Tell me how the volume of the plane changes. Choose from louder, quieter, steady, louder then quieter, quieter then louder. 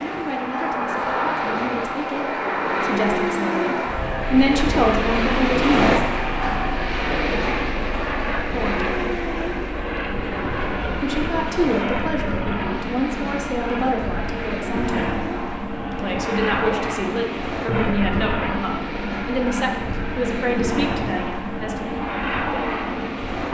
steady.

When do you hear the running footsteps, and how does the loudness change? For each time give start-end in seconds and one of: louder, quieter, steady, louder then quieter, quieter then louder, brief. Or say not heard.
not heard.